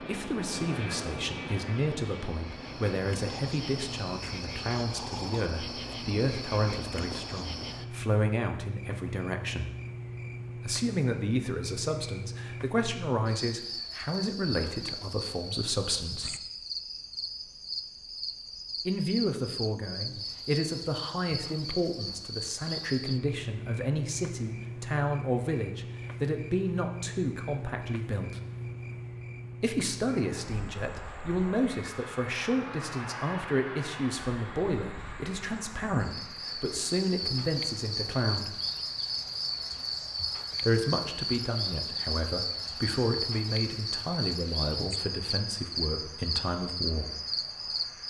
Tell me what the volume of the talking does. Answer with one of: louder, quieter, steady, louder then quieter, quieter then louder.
steady.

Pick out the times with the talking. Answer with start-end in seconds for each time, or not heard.
0.0-9.8, 10.6-16.4, 18.9-28.4, 29.6-38.6, 40.6-47.1.